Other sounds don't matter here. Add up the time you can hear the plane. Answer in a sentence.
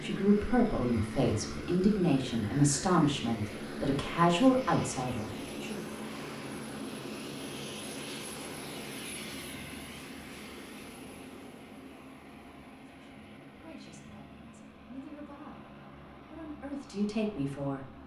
You can hear the plane for 18 seconds altogether.